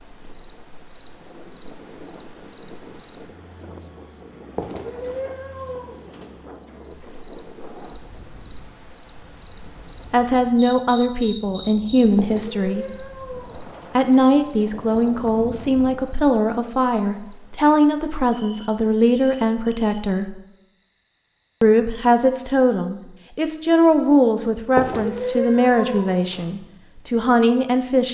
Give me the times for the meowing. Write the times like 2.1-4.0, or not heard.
4.5-6.3, 12.2-13.9, 24.8-26.6.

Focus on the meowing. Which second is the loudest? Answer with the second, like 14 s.
25 s.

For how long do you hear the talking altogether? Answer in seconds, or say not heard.
16 s.